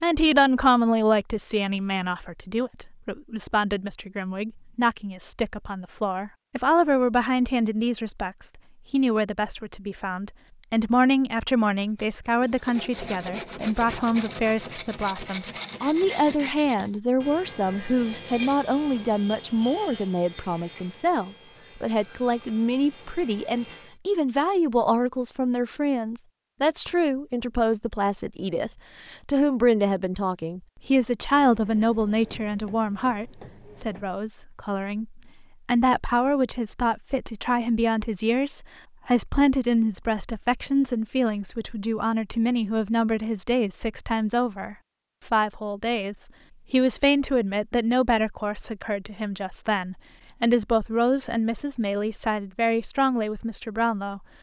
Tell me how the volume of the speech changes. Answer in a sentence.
The loudness of the speech stays about the same.